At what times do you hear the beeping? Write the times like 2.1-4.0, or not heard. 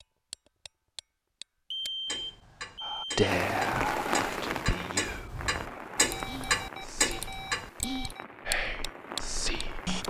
1.7-3.1, 6.1-8.1.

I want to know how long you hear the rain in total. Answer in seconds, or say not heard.
7 s.